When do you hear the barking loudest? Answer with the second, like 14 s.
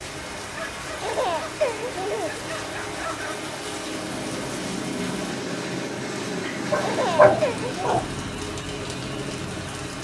7 s.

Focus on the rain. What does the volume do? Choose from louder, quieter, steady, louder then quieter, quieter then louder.
steady.